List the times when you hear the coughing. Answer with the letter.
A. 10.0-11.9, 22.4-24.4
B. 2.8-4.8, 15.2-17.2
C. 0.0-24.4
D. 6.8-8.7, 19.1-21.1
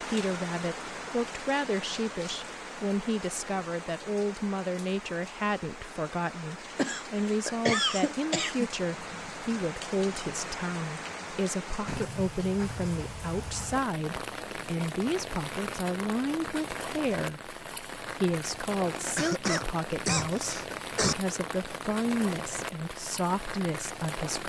D.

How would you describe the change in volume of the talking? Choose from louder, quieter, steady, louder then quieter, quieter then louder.
steady.